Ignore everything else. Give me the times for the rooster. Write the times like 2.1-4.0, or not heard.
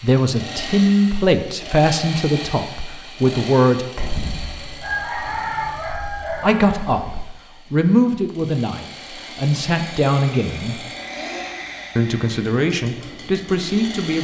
4.0-7.2.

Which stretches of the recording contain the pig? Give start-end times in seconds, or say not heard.
not heard.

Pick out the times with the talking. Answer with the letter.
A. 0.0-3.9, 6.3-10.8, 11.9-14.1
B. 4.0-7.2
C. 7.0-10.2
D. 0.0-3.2
A.